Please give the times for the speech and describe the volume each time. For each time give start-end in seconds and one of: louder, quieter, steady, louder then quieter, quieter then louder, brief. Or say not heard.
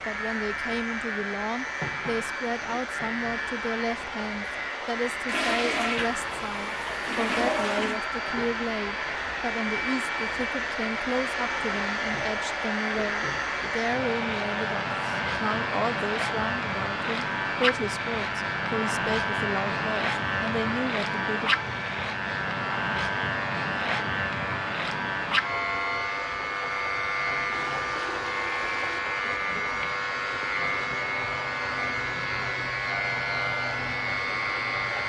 0.1-21.5 steady.